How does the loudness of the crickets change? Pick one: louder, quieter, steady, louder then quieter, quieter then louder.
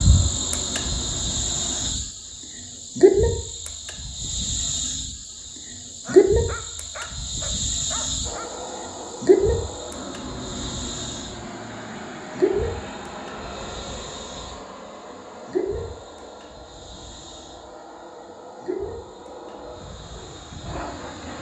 quieter.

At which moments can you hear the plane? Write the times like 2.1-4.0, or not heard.
0.0-1.9, 8.2-21.3.